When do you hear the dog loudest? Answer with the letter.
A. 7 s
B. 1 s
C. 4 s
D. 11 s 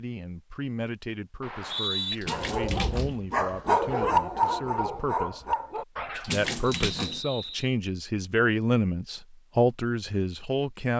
C.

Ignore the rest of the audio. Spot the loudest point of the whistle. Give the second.
2 s.